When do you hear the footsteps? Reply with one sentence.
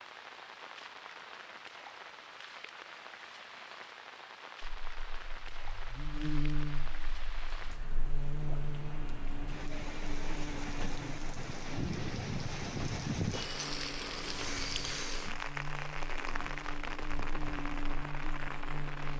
The footsteps can't be heard in this clip.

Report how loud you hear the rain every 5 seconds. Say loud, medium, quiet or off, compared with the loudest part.
medium, medium, loud, loud.